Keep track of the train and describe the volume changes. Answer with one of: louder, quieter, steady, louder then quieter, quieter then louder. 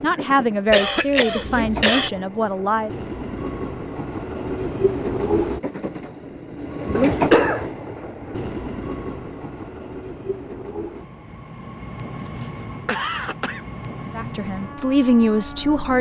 louder then quieter.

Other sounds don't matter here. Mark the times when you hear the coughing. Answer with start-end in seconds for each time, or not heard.
0.7-2.1, 7.0-7.7, 12.2-13.6.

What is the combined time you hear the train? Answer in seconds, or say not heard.
16 s.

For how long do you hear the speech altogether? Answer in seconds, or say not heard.
5 s.